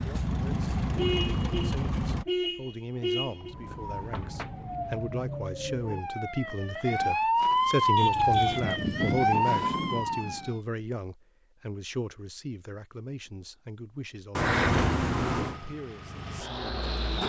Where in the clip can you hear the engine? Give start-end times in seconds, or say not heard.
0.0-2.2, 14.6-17.2.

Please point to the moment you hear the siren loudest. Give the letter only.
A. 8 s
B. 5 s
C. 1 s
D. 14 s
A.